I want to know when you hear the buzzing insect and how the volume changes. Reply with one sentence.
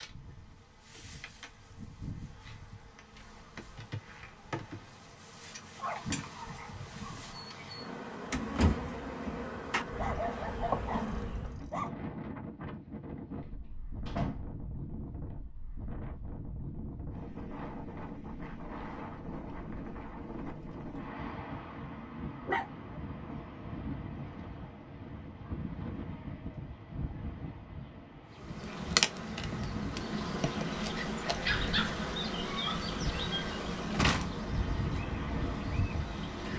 The buzzing insect can be heard from 0.0 to 11.6 s, getting louder; and from 28.3 to 36.5 s, getting quieter.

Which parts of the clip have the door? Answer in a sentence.
You can hear the door from 8.3 to 9.8 s, from 13.7 to 14.4 s and from 33.9 to 34.4 s.